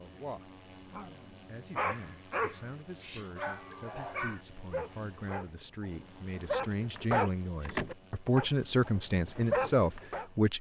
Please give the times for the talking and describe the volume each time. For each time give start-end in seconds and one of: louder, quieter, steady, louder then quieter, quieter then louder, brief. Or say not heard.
0.0-0.5 brief
1.4-10.5 louder.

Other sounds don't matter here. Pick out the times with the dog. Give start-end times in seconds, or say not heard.
0.9-10.2.